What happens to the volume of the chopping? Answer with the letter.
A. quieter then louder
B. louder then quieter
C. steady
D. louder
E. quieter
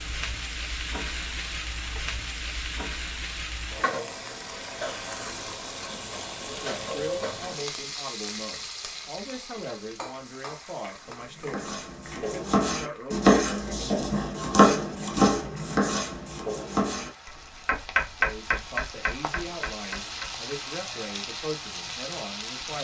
E.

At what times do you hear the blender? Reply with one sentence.
The blender can't be heard in this clip.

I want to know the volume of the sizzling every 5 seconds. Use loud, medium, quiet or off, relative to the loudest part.
loud, loud, medium, medium, loud.